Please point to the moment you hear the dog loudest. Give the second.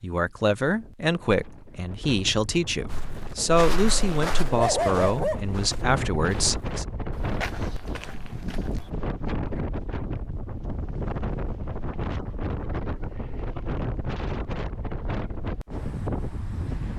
5 s.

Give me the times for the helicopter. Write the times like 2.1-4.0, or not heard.
not heard.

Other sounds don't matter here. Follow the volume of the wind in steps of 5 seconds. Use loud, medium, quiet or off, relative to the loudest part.
medium, loud, loud, loud.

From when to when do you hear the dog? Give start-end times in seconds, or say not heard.
3.4-5.4.